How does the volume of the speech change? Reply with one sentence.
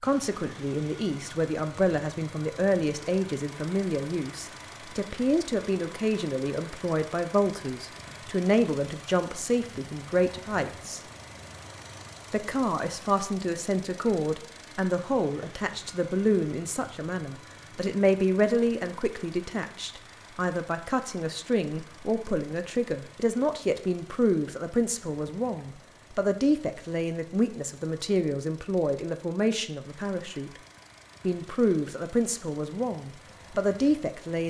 The loudness of the speech stays about the same.